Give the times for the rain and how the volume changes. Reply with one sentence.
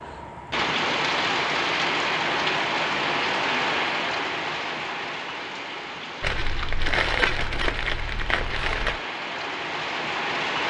You can hear the rain from 0.0 to 10.6 s, getting quieter then louder.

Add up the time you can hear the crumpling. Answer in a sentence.
The crumpling can be heard for 3 seconds in total.